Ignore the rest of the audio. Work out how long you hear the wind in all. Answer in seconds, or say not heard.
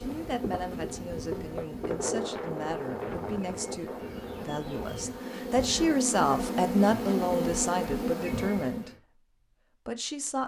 6 s.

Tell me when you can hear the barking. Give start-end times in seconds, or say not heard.
not heard.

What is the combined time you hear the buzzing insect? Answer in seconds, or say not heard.
9 s.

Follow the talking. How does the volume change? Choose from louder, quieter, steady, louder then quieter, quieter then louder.
louder then quieter.